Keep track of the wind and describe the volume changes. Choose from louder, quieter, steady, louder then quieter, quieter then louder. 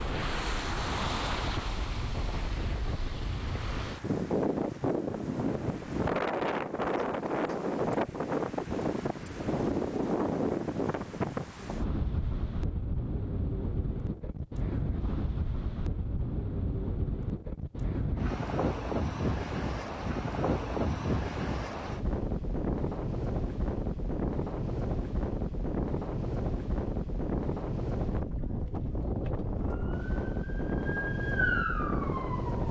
steady.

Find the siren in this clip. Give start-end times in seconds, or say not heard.
29.6-32.6.